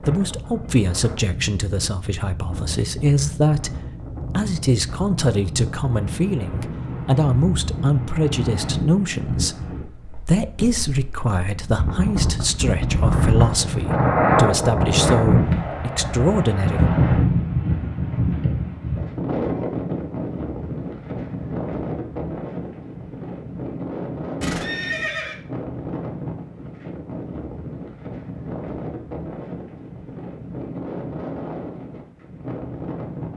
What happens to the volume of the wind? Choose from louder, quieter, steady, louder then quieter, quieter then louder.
louder then quieter.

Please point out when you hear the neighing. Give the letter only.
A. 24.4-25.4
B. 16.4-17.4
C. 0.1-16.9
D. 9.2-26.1
A.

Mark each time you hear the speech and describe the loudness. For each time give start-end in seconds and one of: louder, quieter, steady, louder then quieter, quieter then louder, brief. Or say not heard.
0.1-16.9 steady.